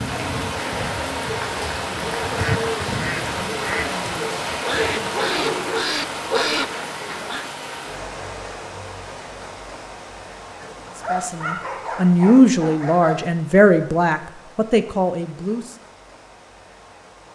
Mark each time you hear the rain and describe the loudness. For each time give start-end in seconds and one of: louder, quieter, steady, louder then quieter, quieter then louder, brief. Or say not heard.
0.0-17.2 quieter.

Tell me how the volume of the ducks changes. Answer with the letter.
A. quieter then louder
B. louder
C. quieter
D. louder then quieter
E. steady
B.